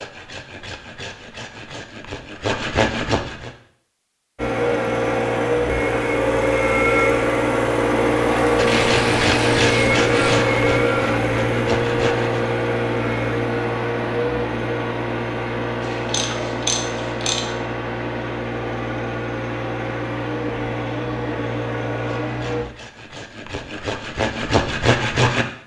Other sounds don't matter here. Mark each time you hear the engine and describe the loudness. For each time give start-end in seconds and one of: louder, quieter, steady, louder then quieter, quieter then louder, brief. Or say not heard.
4.3-22.6 quieter.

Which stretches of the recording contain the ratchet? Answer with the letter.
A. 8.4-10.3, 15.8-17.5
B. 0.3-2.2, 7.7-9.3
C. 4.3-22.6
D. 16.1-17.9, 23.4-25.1
A.